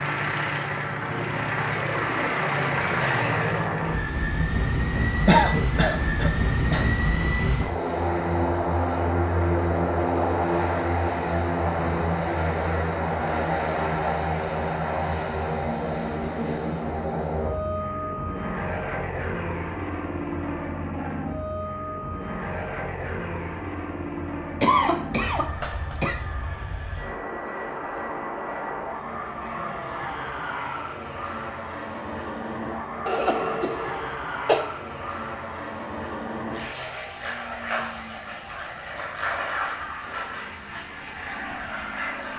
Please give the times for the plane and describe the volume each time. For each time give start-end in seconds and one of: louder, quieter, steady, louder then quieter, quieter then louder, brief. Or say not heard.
0.0-42.3 quieter.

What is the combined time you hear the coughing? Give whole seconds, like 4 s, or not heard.
5 s.